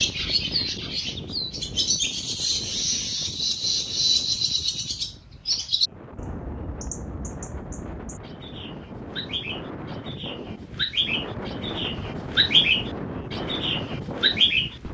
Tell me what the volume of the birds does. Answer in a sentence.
The volume of the birds goes down, then up.